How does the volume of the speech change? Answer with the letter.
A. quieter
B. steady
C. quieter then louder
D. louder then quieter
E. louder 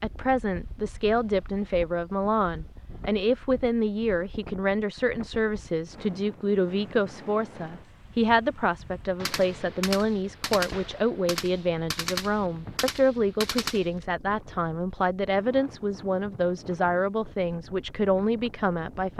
B.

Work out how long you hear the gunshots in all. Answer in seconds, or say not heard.
5 s.